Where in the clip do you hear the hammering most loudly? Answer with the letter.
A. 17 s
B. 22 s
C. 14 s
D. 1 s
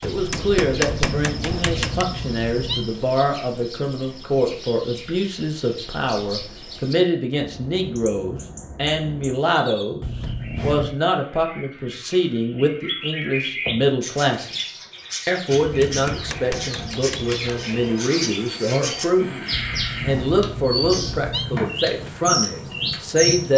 D.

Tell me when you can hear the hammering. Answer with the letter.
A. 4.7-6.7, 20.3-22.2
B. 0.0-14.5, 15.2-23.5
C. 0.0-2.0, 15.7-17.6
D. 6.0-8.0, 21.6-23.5
C.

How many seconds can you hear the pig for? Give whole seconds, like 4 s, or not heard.
not heard.